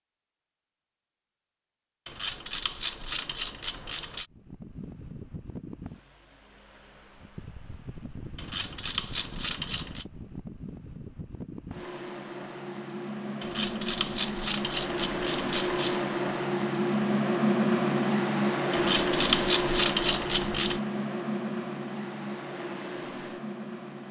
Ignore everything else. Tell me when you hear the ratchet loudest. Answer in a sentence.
The volume of the ratchet peaks at 19 seconds.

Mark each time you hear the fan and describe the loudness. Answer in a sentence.
You can hear the fan from 4.3 to 24.0 s, getting louder then quieter.